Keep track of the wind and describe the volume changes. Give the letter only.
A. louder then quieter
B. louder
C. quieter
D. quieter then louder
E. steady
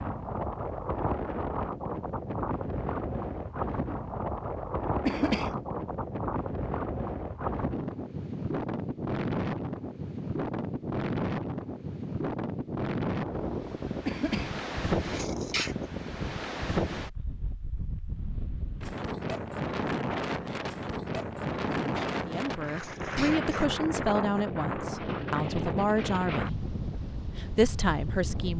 E.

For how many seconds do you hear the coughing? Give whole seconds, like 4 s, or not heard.
4 s.